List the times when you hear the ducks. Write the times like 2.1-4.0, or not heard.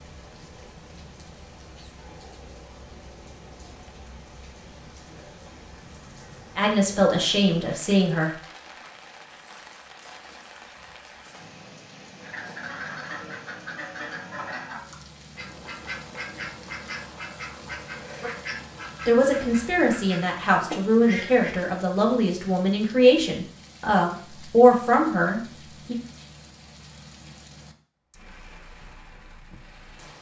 12.2-21.6.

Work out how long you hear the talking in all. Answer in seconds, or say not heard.
9 s.